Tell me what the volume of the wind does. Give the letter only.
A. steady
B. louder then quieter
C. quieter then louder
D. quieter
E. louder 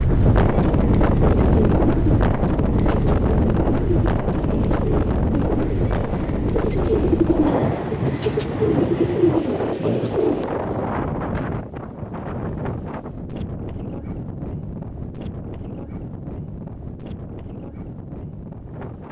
D.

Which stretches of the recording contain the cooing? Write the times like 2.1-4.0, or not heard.
0.3-10.4.